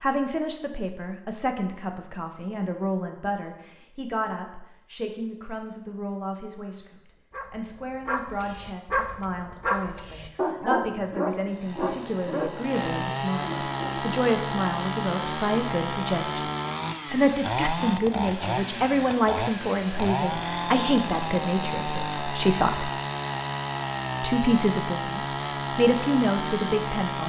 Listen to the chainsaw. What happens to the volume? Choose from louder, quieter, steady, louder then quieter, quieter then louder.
steady.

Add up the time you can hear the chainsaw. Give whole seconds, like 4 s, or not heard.
16 s.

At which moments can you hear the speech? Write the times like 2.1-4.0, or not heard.
0.0-16.4, 17.1-22.9, 24.2-27.2.